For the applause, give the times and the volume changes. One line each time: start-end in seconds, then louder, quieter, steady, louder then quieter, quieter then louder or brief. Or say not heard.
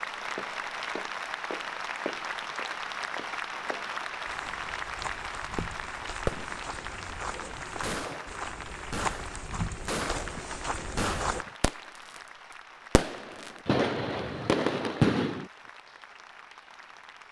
0.0-17.2 quieter.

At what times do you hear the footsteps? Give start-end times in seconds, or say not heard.
0.0-11.4.